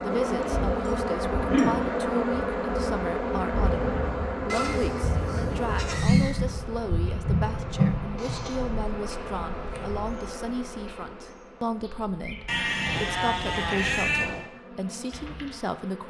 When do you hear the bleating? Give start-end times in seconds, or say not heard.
0.2-1.8, 4.5-6.5, 8.2-9.9, 12.4-14.4.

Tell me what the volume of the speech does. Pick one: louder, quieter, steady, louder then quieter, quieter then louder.
steady.